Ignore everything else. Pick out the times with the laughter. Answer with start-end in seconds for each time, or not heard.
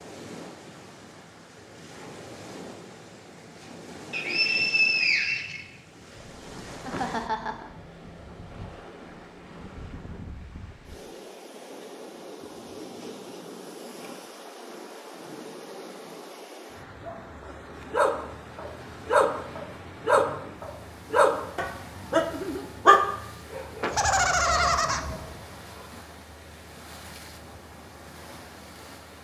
6.8-7.7, 23.8-25.0.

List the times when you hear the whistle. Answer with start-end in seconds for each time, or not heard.
4.1-5.7.